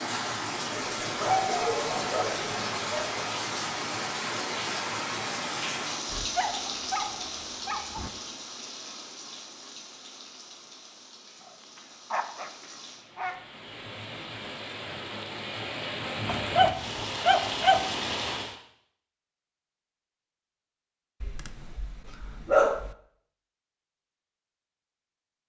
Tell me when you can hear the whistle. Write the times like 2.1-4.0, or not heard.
not heard.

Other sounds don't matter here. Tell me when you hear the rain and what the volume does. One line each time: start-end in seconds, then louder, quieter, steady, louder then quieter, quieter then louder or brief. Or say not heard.
0.0-18.6 quieter then louder.